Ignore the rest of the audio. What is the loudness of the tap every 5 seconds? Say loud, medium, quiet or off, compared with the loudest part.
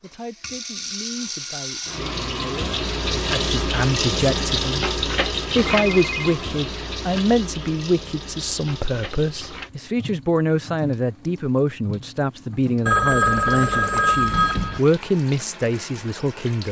loud, loud, quiet, quiet.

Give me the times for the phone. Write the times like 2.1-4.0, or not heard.
5.8-6.3, 12.8-14.8.